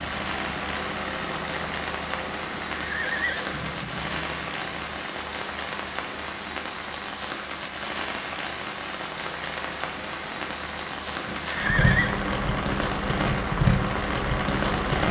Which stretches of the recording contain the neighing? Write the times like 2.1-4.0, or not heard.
2.7-4.2, 11.2-12.2.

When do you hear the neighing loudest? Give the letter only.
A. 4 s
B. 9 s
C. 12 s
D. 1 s
C.